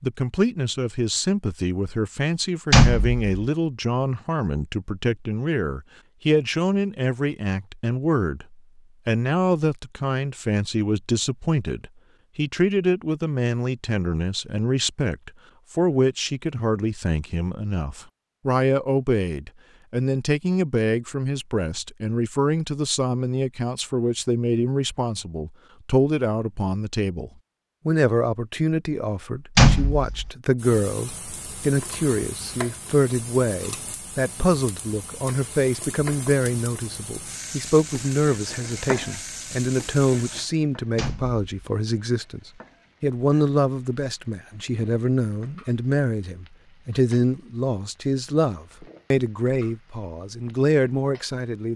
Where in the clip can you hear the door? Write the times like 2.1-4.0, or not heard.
2.7-3.5, 29.6-30.3, 41.0-41.4.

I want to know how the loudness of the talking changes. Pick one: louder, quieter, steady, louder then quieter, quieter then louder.
steady.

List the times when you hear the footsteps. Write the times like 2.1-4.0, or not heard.
not heard.